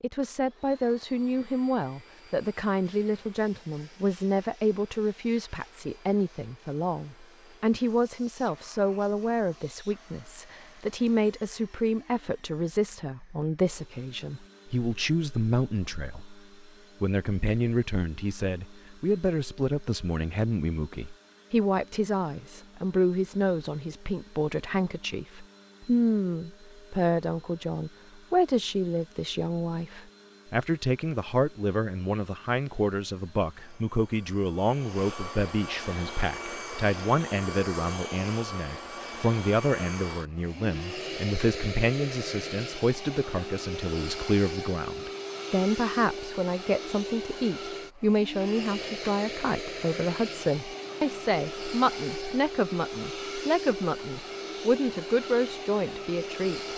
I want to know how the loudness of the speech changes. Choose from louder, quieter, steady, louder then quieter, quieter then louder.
steady.